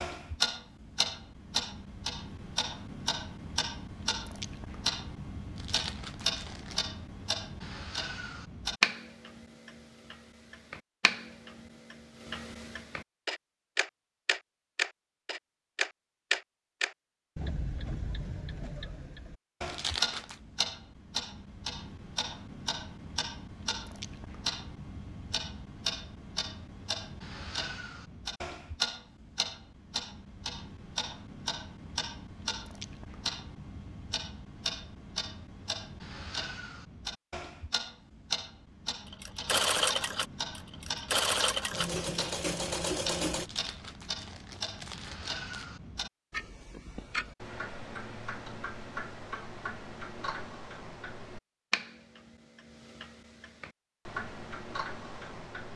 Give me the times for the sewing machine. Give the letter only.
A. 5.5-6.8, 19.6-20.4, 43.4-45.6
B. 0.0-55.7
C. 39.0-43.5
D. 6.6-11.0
C.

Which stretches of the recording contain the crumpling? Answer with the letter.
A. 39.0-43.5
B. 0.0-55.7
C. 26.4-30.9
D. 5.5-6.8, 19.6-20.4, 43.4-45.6
D.